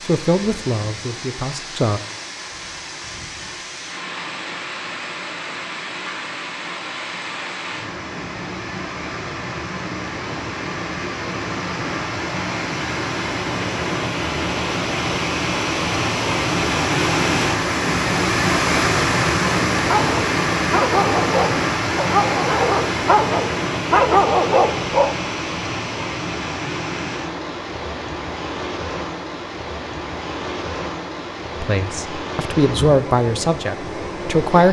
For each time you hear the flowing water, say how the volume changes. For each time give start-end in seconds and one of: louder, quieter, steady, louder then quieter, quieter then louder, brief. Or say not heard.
0.0-34.6 louder then quieter.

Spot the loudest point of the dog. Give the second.
24 s.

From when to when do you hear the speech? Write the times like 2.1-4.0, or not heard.
0.0-2.0, 31.6-34.6.